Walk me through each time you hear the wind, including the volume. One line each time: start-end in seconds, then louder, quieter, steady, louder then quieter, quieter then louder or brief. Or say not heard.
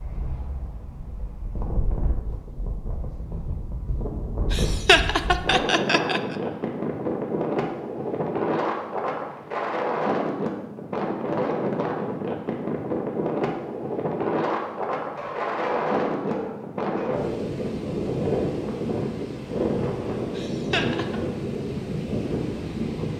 0.0-23.1 louder.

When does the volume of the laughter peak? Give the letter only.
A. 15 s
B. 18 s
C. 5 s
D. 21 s
C.